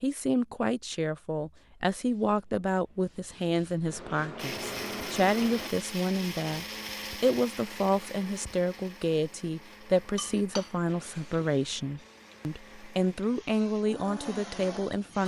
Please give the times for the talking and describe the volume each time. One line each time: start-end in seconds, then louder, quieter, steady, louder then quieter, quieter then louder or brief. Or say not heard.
0.0-15.2 steady.